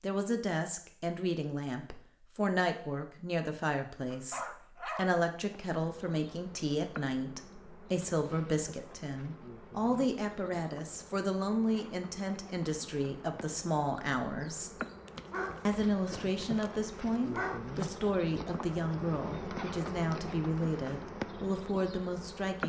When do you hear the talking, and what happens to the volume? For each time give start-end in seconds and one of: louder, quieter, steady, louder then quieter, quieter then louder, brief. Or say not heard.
0.0-14.7 steady
15.7-22.6 steady.